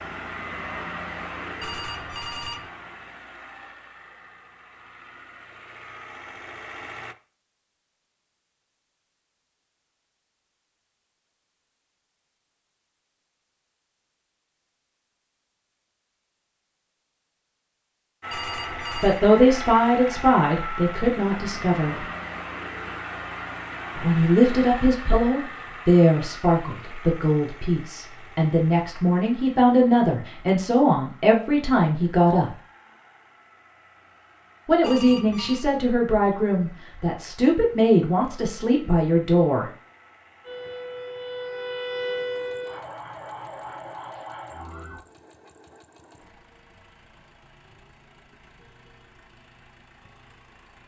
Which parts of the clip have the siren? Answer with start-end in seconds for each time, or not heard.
40.5-45.0.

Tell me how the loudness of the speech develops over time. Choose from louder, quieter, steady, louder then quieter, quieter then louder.
steady.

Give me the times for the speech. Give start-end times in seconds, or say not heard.
18.9-22.1, 23.9-32.5, 34.6-39.6.